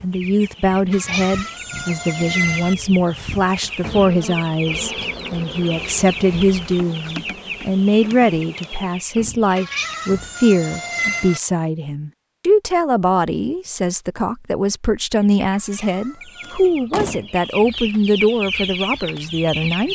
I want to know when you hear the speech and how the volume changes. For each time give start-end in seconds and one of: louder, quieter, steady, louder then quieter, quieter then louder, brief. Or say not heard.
0.0-19.8 steady.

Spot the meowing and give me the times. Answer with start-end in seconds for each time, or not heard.
0.9-2.8, 9.6-11.4, 15.6-16.7.